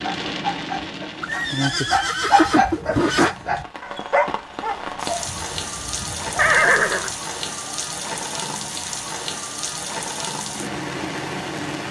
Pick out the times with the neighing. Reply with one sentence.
The neighing can be heard from 1.2 to 3.4 s and from 6.3 to 7.1 s.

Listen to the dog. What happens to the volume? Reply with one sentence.
The loudness of the dog goes up, then down.